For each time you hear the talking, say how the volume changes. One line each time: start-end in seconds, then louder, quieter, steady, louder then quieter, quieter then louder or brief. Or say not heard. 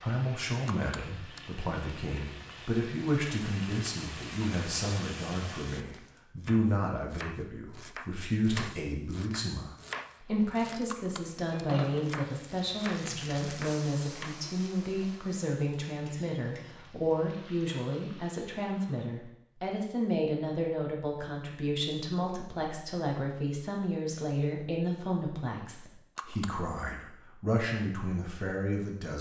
0.0-29.1 steady.